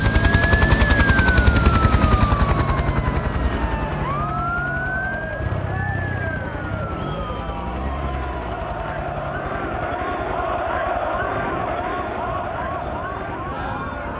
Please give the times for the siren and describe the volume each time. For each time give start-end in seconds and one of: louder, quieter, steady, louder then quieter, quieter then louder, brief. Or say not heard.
0.0-14.1 quieter.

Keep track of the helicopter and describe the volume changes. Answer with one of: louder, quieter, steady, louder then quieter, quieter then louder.
quieter.